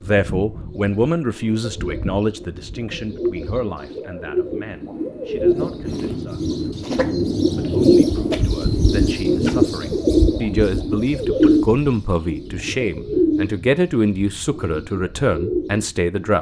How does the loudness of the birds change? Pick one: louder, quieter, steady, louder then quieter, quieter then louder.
louder then quieter.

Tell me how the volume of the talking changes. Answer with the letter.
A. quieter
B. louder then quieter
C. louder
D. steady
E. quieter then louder
E.